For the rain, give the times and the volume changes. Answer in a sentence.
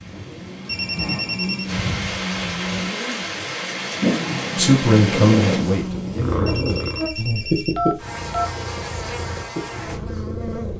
The rain can be heard from 0.0 to 5.6 s, getting louder.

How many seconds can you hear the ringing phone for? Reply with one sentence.
You can hear the ringing phone for 3 seconds altogether.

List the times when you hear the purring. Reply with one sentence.
The purring can be heard from 4.0 to 10.7 s.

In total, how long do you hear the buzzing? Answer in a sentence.
The buzzing can be heard for 11 seconds in total.